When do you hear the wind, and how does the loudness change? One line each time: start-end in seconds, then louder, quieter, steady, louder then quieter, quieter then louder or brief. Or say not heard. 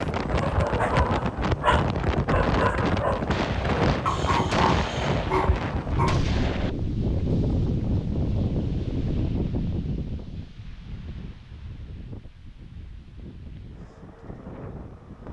0.0-15.2 quieter.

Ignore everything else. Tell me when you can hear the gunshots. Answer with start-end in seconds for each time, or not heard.
3.3-6.7.